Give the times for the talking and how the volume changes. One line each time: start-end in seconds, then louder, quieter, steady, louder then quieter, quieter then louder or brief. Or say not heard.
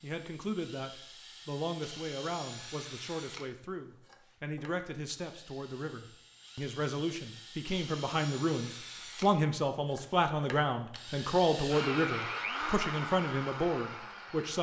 0.0-14.5 louder.